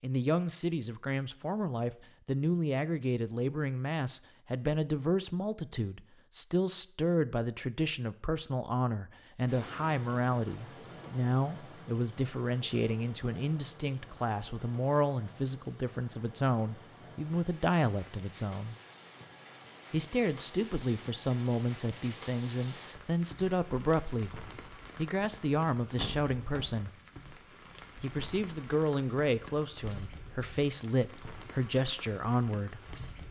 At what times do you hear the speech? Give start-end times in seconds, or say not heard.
0.0-18.8, 19.9-24.3, 24.9-26.9, 28.0-32.9.